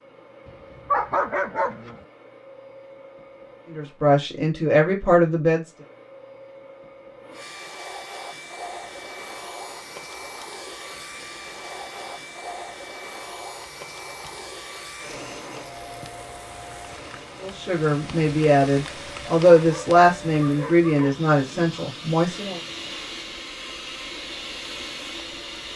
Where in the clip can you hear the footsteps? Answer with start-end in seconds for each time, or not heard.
not heard.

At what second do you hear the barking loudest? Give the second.
1 s.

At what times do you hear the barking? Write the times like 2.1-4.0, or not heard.
0.5-2.0, 19.6-21.1.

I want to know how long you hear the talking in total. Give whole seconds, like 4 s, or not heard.
7 s.